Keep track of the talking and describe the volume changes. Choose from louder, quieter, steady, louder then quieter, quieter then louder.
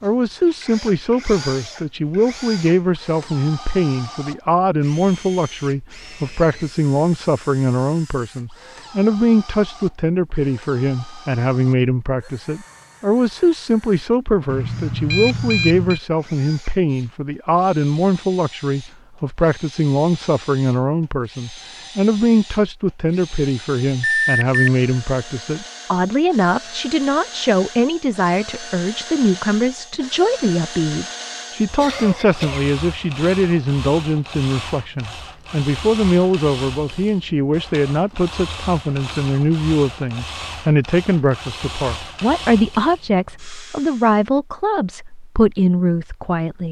steady.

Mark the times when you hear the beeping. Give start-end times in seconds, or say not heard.
14.4-16.0, 24.2-24.7.